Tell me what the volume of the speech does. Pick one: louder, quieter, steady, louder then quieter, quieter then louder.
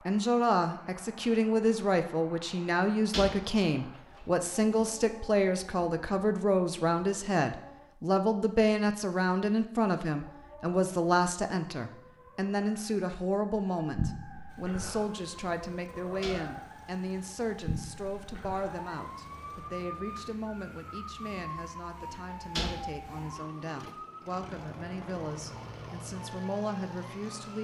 quieter.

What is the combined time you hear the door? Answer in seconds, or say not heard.
3 s.